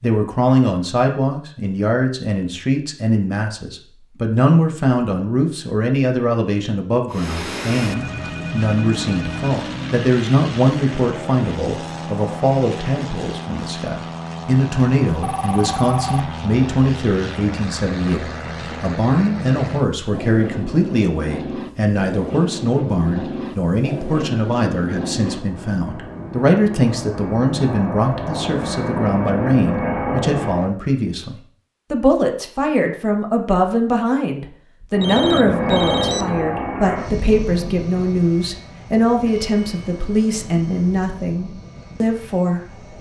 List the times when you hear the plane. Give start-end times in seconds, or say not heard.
7.1-30.8, 34.9-42.9.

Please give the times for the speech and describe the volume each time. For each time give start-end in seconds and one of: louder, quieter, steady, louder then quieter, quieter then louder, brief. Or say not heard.
0.0-42.8 steady.